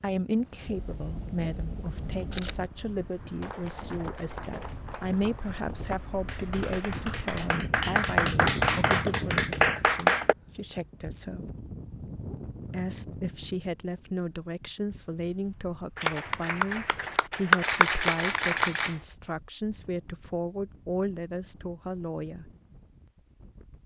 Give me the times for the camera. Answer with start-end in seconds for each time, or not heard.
0.7-2.7, 17.6-19.1.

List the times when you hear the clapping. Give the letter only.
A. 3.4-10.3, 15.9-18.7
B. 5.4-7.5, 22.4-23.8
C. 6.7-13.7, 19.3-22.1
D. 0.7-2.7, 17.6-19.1
A.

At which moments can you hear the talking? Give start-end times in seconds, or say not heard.
0.0-11.4, 12.7-22.5.